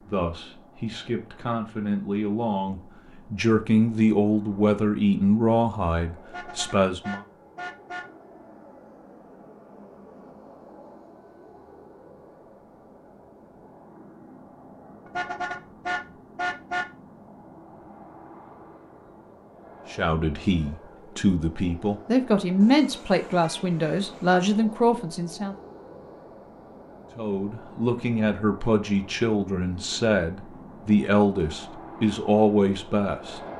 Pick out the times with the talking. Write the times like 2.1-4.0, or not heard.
0.0-7.2, 19.9-25.6, 27.1-33.4.